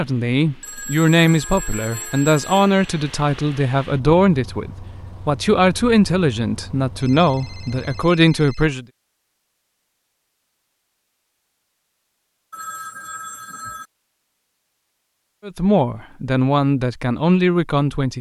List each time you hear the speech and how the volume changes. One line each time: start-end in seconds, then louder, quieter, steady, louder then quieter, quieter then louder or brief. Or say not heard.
0.0-8.8 steady
15.4-18.1 brief.